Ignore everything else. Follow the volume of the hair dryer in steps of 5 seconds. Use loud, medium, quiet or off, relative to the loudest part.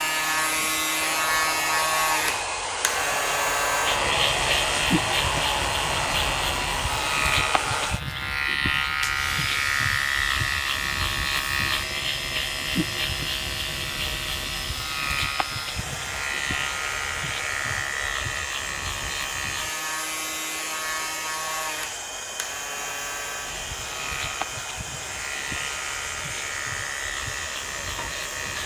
loud, loud, medium, medium, medium, medium.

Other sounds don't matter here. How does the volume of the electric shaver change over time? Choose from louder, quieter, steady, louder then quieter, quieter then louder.
quieter.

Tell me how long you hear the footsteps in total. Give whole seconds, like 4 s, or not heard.
not heard.